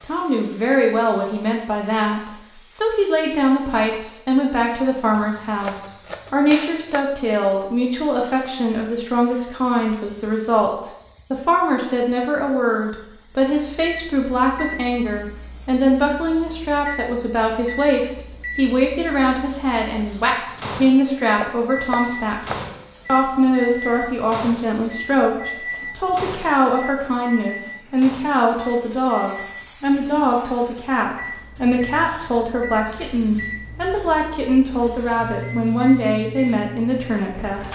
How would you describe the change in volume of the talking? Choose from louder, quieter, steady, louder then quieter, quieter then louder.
steady.